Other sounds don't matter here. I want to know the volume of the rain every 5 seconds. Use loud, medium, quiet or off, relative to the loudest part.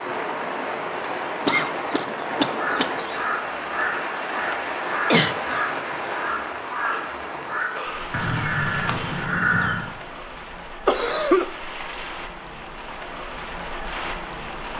loud, loud, medium.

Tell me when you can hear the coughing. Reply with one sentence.
You can hear the coughing from 1.4 to 3.1 s, from 5.1 to 5.7 s and from 10.8 to 11.5 s.